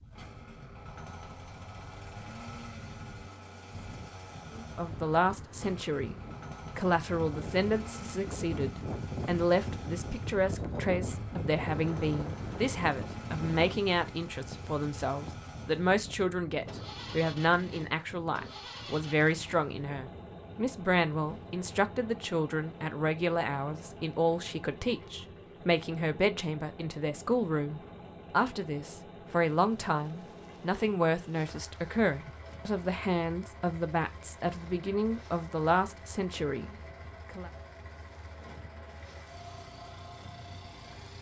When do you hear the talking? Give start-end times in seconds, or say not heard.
4.5-37.5.